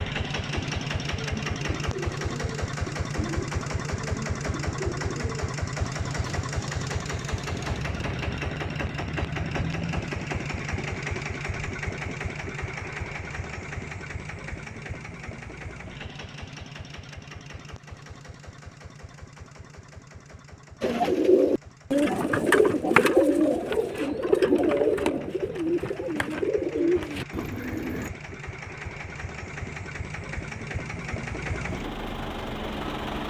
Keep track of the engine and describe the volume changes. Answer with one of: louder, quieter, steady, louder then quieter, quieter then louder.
quieter then louder.